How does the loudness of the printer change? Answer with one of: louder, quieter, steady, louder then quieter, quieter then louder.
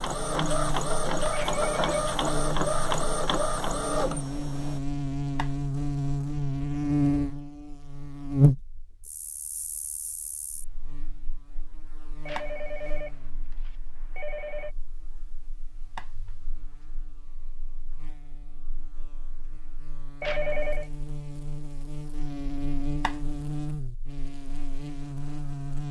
steady.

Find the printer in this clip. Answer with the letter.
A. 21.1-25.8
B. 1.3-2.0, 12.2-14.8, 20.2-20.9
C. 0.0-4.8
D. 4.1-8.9
C.